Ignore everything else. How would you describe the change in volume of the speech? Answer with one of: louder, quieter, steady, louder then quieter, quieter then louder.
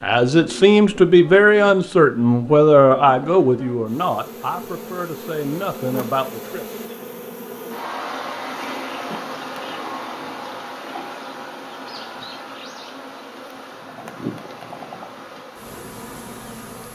quieter.